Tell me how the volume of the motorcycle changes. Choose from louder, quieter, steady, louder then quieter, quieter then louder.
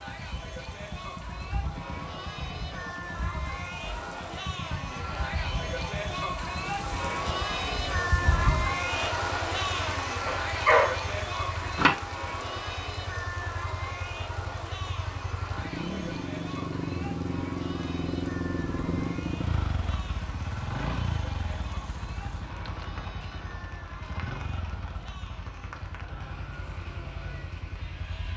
louder then quieter.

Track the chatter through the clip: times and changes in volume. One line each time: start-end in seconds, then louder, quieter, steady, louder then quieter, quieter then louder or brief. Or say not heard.
0.0-28.3 louder then quieter.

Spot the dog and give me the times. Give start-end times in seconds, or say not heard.
10.2-11.9.